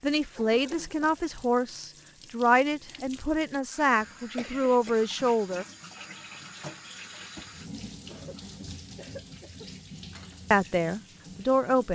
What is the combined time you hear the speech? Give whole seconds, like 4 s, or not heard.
7 s.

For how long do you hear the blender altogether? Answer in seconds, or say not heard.
not heard.